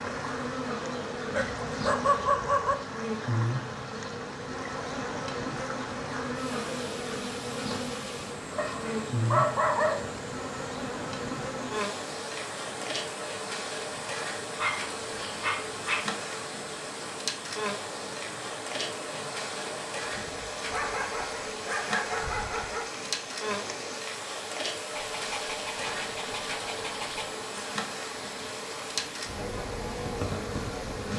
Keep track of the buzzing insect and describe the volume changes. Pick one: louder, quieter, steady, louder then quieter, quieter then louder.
steady.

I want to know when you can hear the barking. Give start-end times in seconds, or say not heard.
1.3-2.8, 8.6-10.2, 14.6-16.1, 20.7-22.9, 24.9-27.3.